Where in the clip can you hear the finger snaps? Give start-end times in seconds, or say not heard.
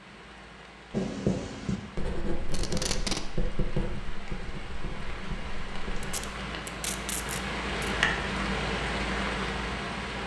not heard.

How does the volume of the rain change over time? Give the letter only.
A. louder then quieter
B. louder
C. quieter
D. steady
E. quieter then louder
B.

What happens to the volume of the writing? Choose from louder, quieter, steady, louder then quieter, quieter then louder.
quieter.